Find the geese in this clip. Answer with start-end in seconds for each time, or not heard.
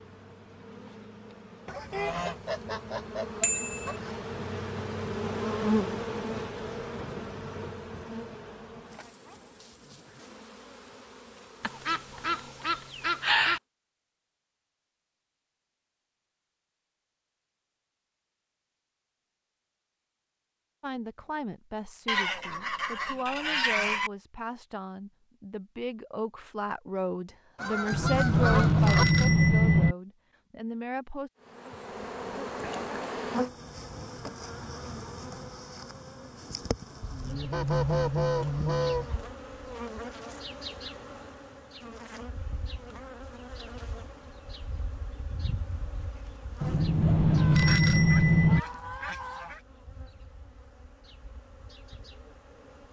1.6-4.3, 11.6-13.6, 22.1-24.1, 27.6-29.1, 37.0-39.2, 47.4-49.6.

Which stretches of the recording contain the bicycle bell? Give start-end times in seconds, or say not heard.
3.4-3.9, 27.9-29.9, 46.6-48.6.